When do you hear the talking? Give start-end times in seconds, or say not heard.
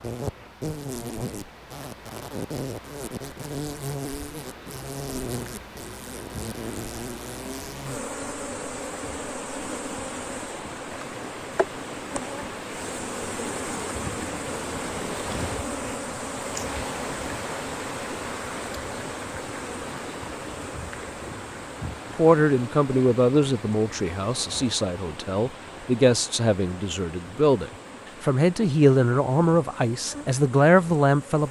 22.1-31.4.